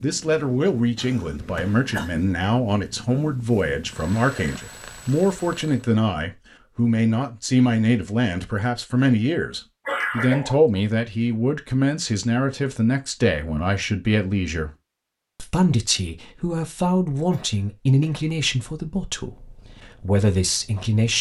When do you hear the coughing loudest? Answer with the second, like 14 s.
10 s.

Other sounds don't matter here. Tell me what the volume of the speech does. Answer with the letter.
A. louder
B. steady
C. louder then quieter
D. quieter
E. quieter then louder
B.